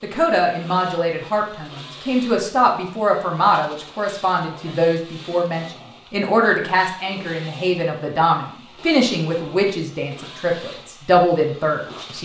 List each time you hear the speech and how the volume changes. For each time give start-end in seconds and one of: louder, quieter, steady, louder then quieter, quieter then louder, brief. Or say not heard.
0.0-12.2 steady.